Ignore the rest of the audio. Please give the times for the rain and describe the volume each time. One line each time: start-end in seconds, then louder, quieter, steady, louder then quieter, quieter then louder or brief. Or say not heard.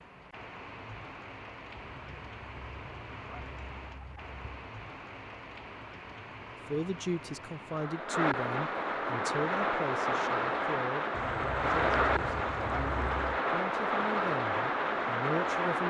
0.0-15.8 louder.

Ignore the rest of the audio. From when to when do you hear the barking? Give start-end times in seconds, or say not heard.
not heard.